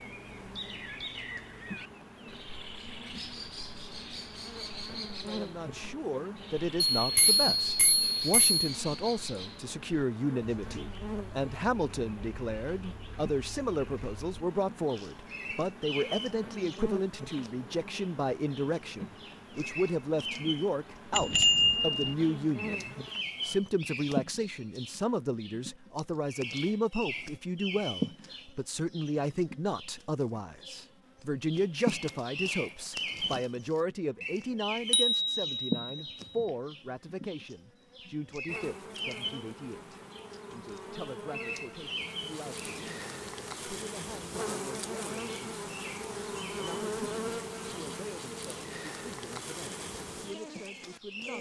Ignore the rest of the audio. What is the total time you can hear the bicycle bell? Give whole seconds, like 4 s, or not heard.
4 s.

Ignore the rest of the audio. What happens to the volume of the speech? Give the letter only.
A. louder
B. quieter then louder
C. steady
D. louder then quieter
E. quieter
E.